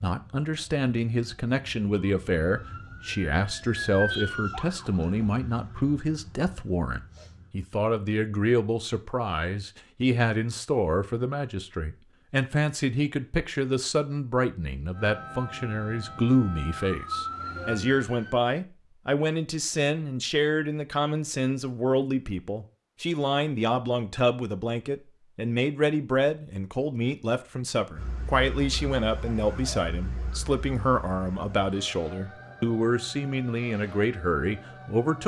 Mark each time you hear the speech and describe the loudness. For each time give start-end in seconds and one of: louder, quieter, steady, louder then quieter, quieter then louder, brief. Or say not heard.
0.0-35.2 steady.